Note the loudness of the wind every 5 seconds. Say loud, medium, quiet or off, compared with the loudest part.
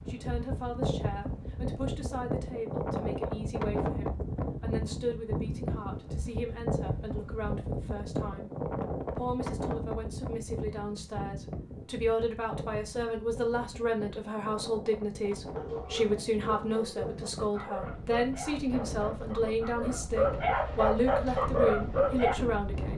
loud, loud, medium, medium, medium.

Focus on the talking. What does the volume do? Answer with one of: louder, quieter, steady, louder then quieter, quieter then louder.
louder.